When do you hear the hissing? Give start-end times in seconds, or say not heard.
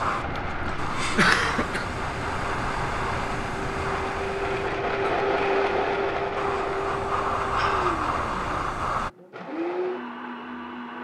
0.0-9.1.